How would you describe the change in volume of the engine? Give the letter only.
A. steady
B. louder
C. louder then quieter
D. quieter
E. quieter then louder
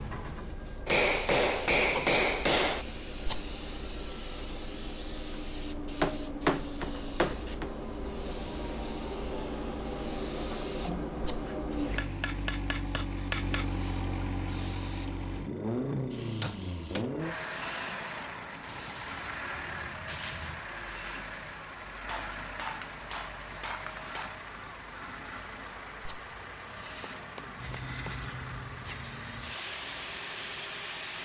C.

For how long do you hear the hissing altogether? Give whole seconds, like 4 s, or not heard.
31 s.